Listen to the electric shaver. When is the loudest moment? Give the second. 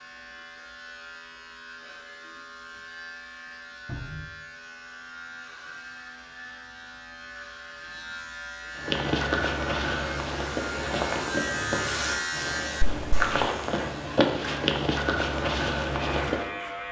12 s.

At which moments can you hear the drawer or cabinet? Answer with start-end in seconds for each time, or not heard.
3.9-4.3.